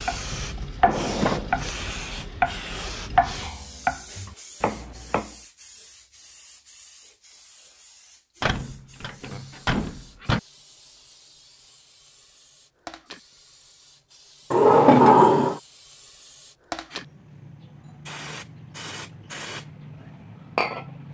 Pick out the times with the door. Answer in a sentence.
The door can be heard from 0.8 to 1.8 s, from 8.4 to 10.4 s and from 14.5 to 15.6 s.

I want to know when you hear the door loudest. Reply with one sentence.
The volume of the door peaks at 15 seconds.